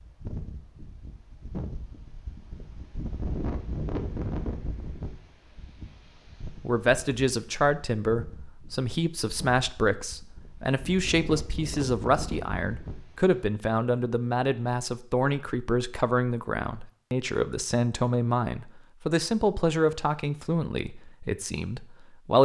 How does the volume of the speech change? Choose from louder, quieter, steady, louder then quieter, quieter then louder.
steady.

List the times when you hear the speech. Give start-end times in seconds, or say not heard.
6.5-22.4.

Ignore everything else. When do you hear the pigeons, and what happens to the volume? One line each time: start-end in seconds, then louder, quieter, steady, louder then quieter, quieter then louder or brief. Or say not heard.
not heard.